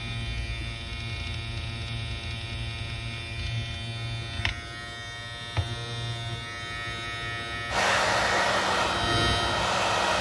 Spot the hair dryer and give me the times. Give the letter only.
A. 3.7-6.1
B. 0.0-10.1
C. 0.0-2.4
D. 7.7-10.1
D.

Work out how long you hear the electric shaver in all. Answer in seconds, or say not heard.
10 s.